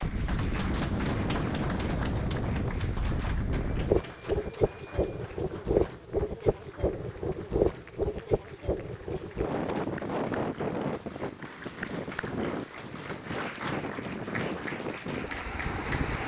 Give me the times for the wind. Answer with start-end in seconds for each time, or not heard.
0.0-16.2.